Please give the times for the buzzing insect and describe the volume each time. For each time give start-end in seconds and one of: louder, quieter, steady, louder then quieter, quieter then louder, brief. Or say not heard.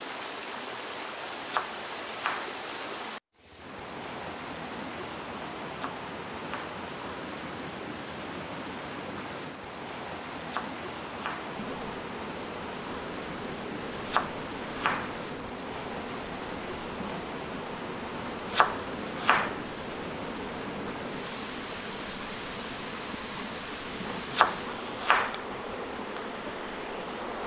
11.6-27.4 steady.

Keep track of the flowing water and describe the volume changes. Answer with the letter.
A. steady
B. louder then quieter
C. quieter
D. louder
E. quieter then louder
A.